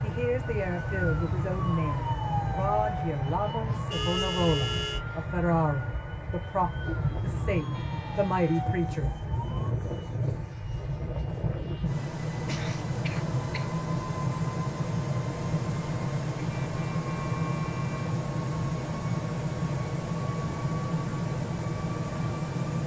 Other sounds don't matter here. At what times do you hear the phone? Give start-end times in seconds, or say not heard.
not heard.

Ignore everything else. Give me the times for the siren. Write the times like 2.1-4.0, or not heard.
0.0-9.7.